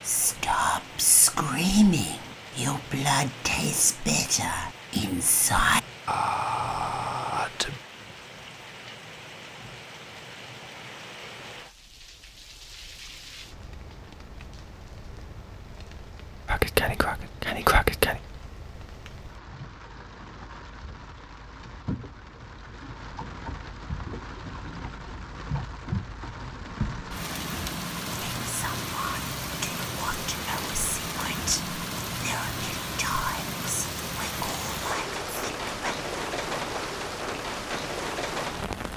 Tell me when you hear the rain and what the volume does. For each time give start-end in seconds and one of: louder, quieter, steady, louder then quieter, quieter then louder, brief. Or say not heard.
0.0-38.9 louder.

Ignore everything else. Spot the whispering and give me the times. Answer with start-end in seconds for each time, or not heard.
0.1-7.8, 16.4-18.2, 28.4-36.0.